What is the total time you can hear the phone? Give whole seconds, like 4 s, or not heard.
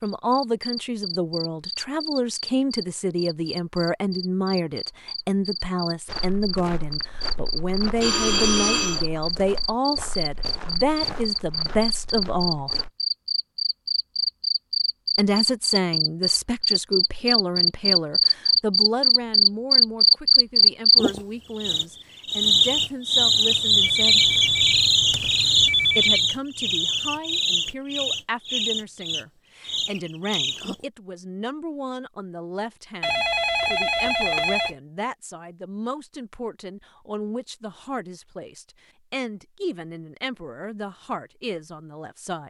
5 s.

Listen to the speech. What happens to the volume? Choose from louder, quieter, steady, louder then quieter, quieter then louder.
quieter.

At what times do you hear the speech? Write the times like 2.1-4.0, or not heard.
0.0-12.8, 15.2-24.2, 25.9-42.4.